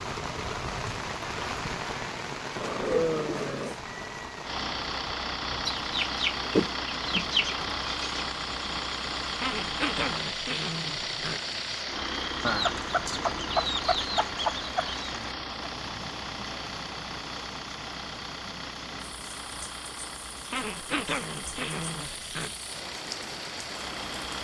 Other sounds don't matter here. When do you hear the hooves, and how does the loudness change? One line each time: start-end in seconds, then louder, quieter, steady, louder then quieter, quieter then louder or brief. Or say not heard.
not heard.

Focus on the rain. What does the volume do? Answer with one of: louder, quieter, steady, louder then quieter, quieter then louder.
quieter.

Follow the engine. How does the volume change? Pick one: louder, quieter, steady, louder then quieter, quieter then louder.
quieter.